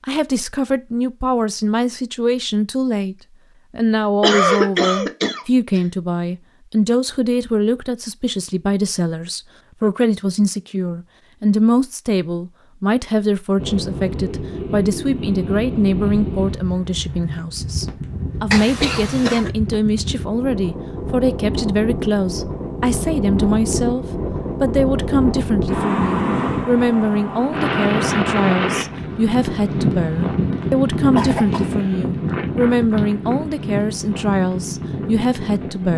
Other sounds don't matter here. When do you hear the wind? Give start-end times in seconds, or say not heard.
13.6-35.9.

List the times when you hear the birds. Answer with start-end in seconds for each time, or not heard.
not heard.